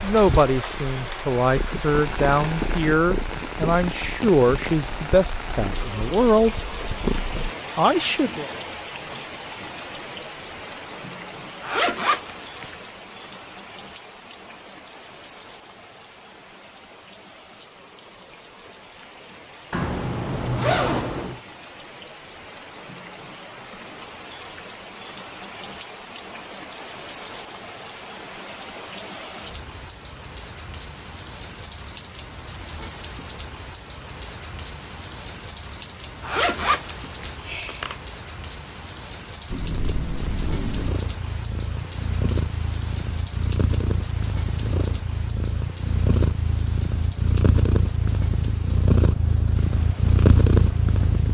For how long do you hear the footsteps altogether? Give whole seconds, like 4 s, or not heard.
not heard.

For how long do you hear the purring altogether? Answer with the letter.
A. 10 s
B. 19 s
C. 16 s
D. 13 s
B.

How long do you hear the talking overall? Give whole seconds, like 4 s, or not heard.
7 s.